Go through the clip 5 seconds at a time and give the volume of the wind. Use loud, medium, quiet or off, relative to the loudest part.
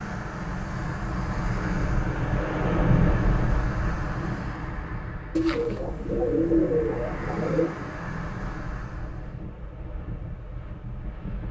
loud, medium, medium.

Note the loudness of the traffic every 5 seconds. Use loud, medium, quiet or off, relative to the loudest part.
loud, loud, off.